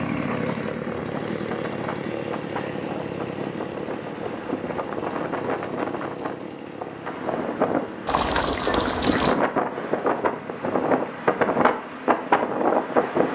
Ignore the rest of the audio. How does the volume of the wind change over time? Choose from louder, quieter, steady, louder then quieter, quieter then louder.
louder.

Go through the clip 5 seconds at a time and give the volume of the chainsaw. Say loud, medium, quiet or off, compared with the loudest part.
loud, medium, medium.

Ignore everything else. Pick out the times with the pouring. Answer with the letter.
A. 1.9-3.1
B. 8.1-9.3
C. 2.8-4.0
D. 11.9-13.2
B.